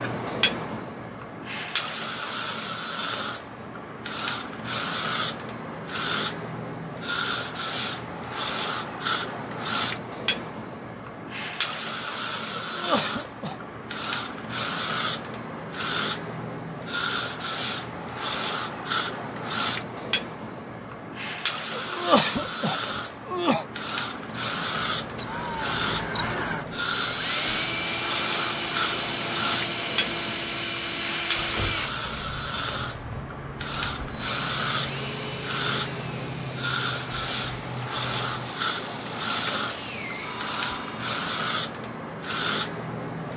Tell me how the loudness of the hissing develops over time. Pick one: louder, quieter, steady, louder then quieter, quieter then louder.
steady.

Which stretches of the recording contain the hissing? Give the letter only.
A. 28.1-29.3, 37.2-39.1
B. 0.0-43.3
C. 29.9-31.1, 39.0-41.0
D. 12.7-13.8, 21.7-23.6
B.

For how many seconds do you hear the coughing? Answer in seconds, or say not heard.
3 s.